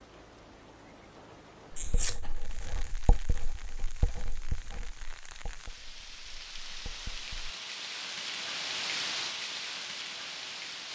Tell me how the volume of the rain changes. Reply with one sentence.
The loudness of the rain goes up.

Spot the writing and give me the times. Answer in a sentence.
You can hear the writing from 1.7 to 7.5 s.